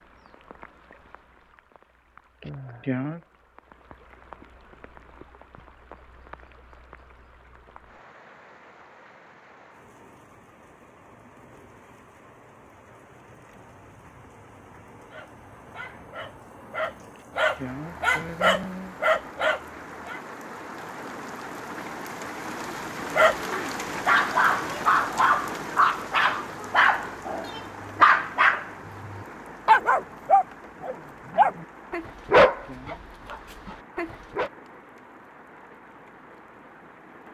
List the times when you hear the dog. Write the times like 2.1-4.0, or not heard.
15.1-20.2, 23.1-34.5.